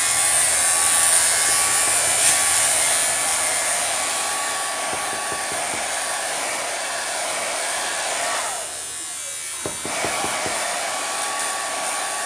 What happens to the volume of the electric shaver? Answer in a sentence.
The loudness of the electric shaver goes down.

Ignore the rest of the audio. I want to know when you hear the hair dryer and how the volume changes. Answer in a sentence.
You can hear the hair dryer from 0.0 to 12.2 s, at a steady volume.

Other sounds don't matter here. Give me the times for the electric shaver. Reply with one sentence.
You can hear the electric shaver from 0.0 to 12.2 s.